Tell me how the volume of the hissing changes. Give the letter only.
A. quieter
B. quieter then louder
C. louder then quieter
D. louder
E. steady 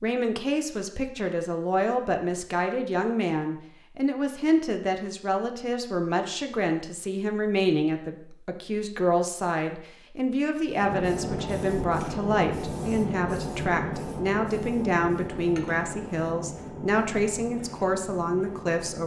A.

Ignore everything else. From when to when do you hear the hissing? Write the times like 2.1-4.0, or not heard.
10.7-19.0.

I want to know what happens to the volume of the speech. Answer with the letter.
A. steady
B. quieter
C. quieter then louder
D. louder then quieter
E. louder
A.